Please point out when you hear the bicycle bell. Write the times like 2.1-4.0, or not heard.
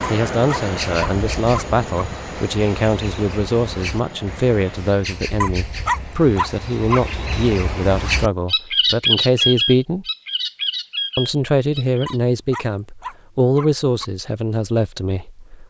not heard.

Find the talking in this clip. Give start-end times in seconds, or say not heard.
0.1-10.1, 11.2-15.6.